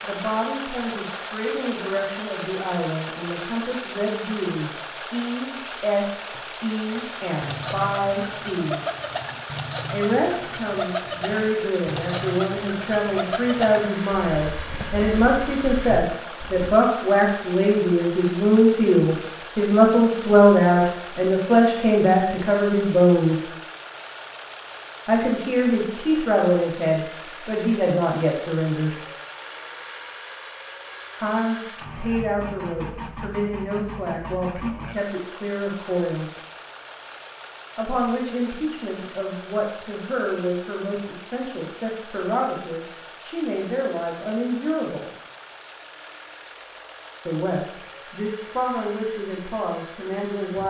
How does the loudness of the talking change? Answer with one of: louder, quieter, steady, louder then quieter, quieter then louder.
louder then quieter.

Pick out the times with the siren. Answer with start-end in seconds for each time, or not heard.
not heard.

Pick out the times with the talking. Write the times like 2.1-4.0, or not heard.
0.0-8.8, 9.9-23.4, 25.1-28.9, 31.2-36.4, 37.8-45.1, 47.2-50.6.